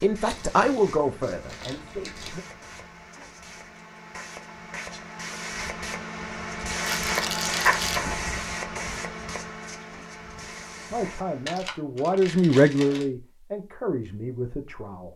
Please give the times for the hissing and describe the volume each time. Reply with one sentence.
You can hear the hissing from 0.0 to 11.6 s, getting louder then quieter.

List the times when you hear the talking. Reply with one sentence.
The talking can be heard from 0.0 to 2.4 s and from 10.9 to 15.1 s.